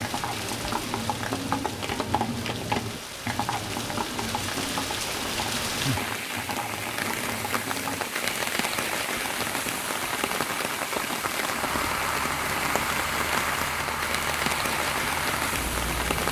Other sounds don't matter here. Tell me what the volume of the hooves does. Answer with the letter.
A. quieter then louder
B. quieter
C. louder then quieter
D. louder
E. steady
B.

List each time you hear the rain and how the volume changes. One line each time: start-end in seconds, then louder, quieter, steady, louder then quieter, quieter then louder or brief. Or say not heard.
0.0-16.2 louder.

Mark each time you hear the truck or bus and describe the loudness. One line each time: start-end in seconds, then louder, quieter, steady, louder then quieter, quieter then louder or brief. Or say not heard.
11.5-16.2 steady.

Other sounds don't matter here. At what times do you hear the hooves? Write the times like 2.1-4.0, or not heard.
0.0-8.1.